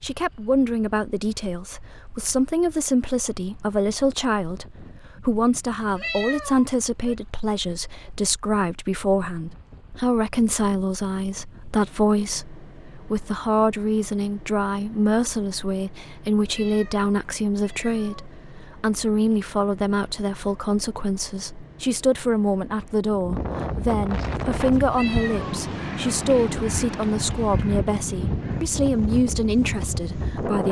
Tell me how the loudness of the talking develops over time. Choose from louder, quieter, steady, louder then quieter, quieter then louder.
steady.